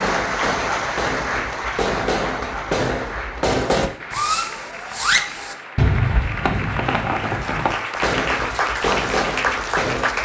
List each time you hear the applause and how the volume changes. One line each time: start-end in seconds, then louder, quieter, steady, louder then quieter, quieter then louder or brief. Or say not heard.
0.0-10.2 quieter then louder.